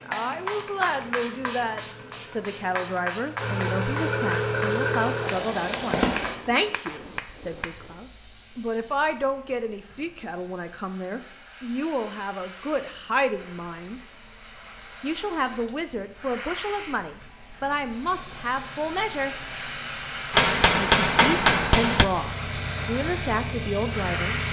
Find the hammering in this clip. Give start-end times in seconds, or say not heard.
5.5-7.9, 20.3-22.1.